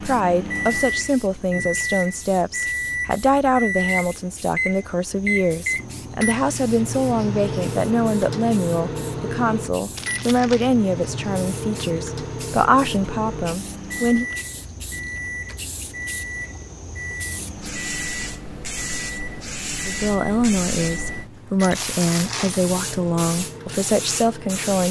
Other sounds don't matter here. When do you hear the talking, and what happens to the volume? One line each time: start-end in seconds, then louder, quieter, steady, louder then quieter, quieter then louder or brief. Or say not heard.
0.0-14.2 steady
19.9-24.8 steady.